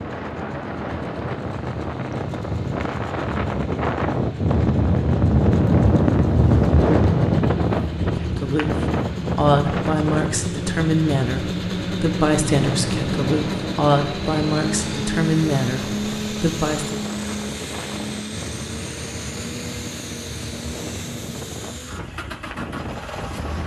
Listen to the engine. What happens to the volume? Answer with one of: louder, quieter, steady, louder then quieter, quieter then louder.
louder then quieter.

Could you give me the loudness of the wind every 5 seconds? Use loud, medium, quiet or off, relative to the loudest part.
medium, loud, medium, quiet, quiet.